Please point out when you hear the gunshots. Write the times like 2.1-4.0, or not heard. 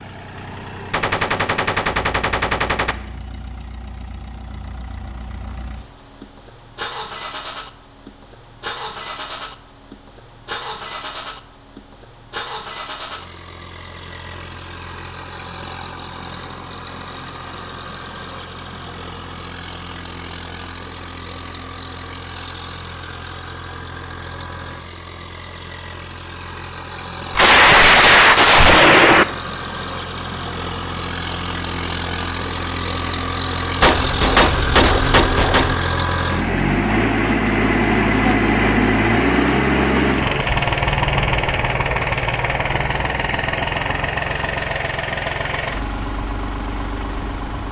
0.9-3.0, 27.4-29.2, 33.8-35.8.